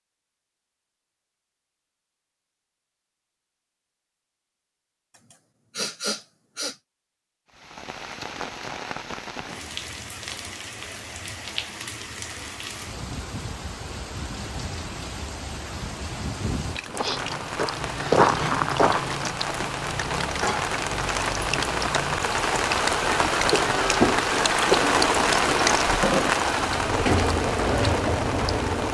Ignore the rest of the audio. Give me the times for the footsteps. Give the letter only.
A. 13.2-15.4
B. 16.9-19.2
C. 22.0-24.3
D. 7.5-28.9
B.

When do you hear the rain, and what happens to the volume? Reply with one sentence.
The rain can be heard from 7.5 to 28.9 s, getting louder.